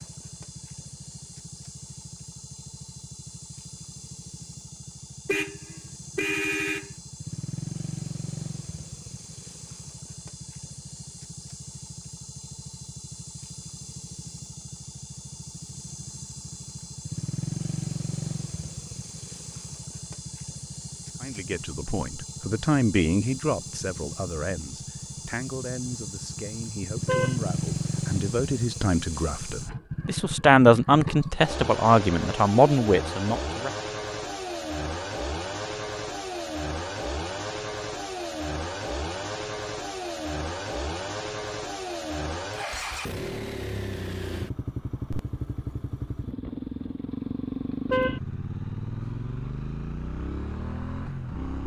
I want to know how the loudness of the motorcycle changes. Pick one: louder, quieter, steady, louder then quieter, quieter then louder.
louder.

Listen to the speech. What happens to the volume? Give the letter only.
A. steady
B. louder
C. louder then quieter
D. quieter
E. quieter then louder
E.